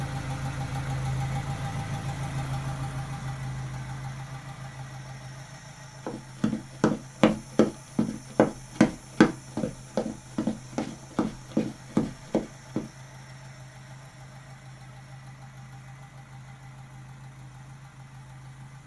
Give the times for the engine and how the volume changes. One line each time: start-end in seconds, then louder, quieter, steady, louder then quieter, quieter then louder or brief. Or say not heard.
0.0-18.8 quieter.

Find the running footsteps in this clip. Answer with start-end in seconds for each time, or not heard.
6.0-12.8.